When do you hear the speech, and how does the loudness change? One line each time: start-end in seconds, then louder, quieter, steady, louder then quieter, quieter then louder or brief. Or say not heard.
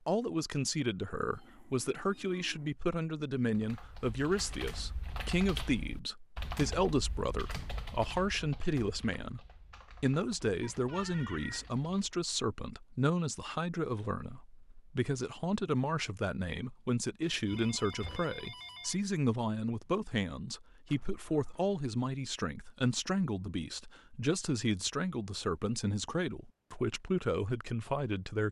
0.1-28.4 steady.